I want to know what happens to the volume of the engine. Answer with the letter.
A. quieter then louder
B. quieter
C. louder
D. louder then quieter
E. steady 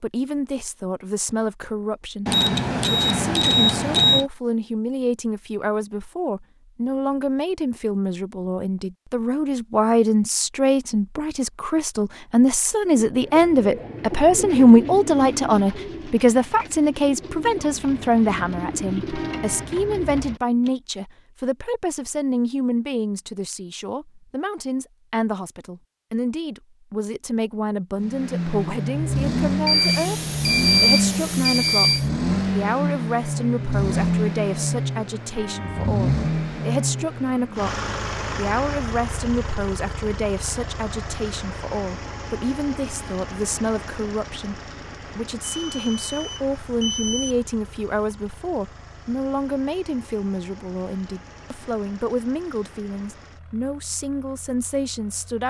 B.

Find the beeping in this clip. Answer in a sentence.
You can hear the beeping from 2.2 to 4.2 s, from 29.6 to 32.0 s and from 45.6 to 47.4 s.